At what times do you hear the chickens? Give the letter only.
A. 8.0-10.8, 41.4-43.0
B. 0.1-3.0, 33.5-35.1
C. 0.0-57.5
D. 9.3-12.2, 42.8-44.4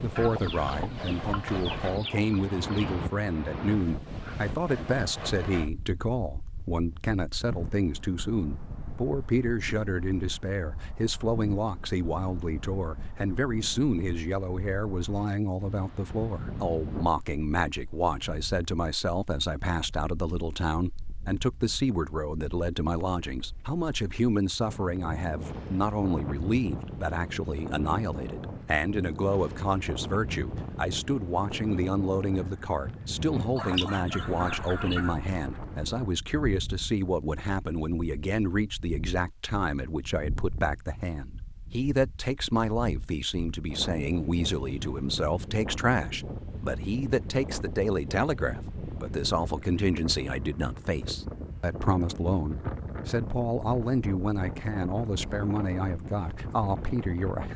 B.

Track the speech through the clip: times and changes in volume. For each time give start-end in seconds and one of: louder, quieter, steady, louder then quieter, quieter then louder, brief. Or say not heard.
0.0-57.5 steady.